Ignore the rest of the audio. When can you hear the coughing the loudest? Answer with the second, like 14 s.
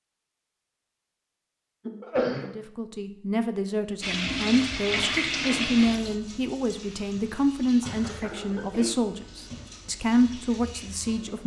2 s.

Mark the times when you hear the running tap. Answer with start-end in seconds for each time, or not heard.
4.0-11.4.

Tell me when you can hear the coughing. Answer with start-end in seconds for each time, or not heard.
1.9-2.5, 7.8-9.0.